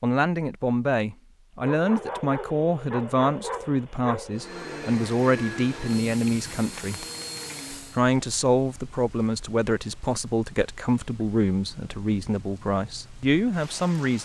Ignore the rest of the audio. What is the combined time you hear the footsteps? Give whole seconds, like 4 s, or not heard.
not heard.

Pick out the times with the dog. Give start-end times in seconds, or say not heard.
1.6-4.5.